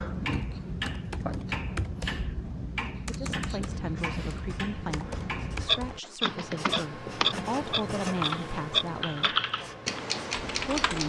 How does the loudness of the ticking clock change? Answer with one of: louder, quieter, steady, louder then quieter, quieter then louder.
louder.